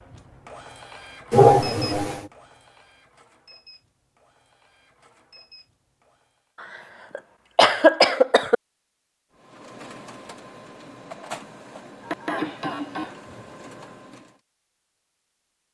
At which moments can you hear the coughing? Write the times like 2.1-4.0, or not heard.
1.3-2.2, 7.2-8.6, 12.0-13.5.